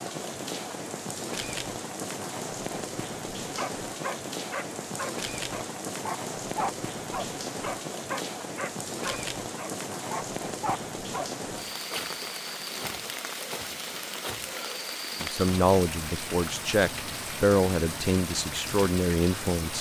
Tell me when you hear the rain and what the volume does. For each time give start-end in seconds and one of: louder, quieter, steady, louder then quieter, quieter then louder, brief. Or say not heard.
0.0-19.7 steady.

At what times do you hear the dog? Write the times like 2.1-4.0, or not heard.
3.5-11.3.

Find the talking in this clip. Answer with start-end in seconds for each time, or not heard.
15.2-19.7.